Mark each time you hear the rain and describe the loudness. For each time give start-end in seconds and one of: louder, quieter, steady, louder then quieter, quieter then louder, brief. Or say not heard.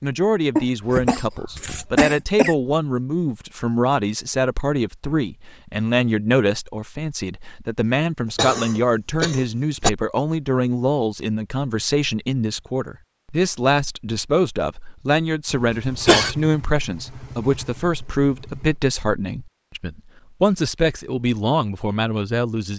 not heard.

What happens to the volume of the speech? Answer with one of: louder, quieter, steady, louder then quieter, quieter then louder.
steady.